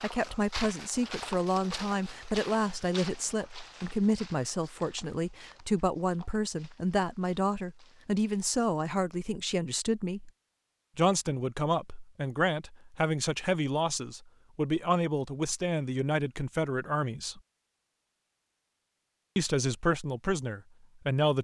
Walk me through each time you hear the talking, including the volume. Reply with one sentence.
You can hear the talking from 0.0 to 10.3 s, at a steady volume; from 10.9 to 17.4 s, at a steady volume; and briefly from 19.4 to 21.4 s.